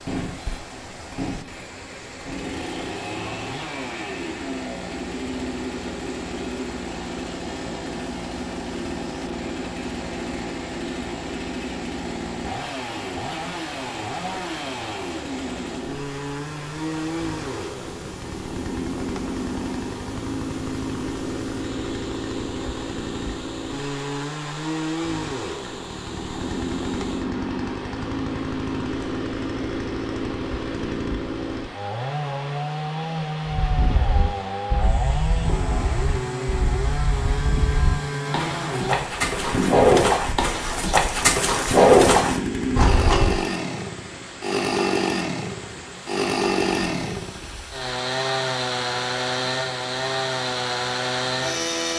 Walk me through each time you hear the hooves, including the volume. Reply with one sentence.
You can hear the hooves from 33.5 to 43.4 s, getting louder.